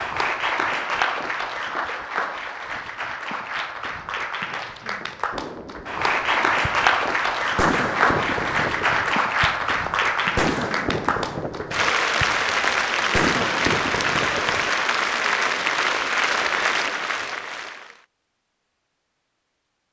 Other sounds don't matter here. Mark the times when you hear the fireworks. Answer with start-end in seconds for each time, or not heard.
5.3-14.7.